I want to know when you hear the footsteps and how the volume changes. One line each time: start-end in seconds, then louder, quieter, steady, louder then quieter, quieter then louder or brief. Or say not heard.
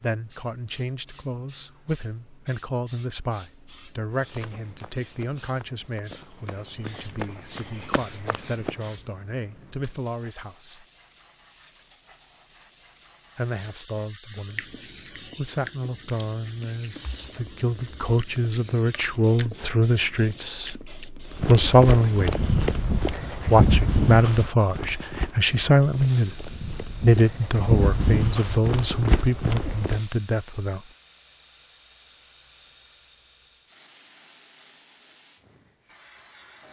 4.3-8.8 louder
21.4-30.0 quieter then louder.